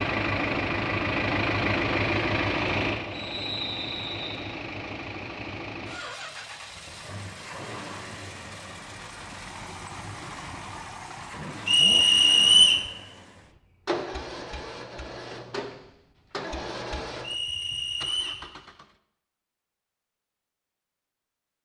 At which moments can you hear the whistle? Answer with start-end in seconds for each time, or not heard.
3.1-4.5, 11.7-12.8, 17.2-18.4.